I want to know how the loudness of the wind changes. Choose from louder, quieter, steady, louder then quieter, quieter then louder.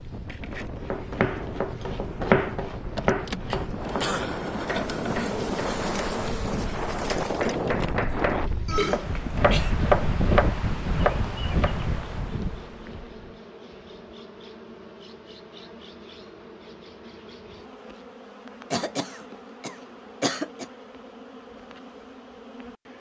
louder.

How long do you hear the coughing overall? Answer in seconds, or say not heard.
4 s.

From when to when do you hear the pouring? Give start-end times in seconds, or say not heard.
not heard.